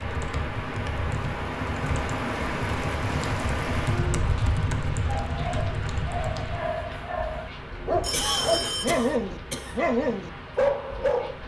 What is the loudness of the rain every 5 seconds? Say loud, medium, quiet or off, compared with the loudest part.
loud, medium, medium.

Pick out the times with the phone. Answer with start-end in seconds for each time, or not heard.
8.0-9.0.